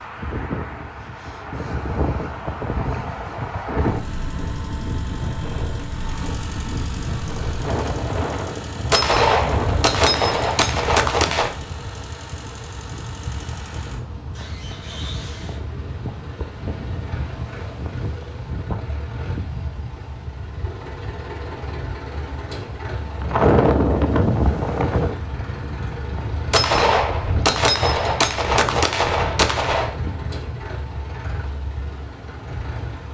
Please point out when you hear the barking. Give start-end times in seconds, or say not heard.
not heard.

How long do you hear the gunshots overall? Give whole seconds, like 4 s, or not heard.
6 s.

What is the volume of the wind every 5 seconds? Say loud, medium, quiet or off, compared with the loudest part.
medium, medium, medium, medium, loud, medium, quiet.